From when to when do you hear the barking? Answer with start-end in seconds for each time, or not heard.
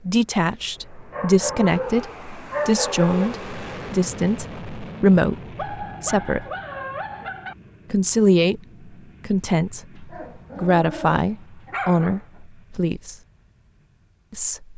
1.1-3.4, 5.5-7.5, 9.9-12.2.